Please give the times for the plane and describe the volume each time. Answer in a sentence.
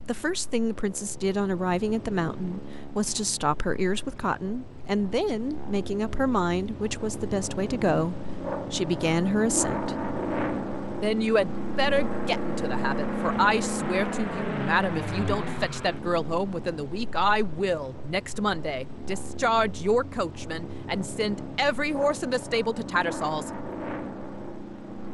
The plane can be heard from 0.0 to 25.0 s, getting louder then quieter.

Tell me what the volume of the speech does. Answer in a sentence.
The loudness of the speech stays about the same.